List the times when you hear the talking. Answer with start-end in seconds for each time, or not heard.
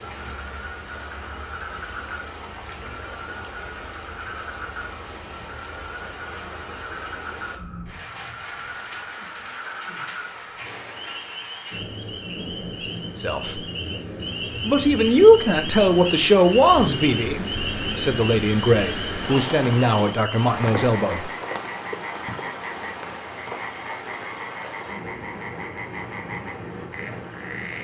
13.2-13.6, 14.6-21.3.